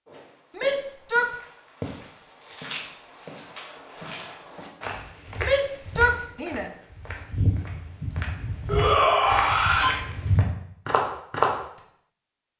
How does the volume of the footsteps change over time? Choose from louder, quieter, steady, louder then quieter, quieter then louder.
louder.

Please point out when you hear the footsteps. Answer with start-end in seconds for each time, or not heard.
0.1-11.5.